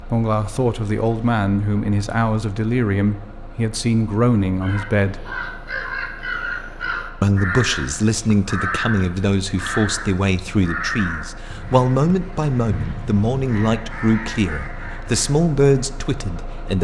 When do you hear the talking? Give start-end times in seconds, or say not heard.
0.0-5.3, 7.2-16.8.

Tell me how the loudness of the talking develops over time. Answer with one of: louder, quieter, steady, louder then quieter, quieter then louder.
steady.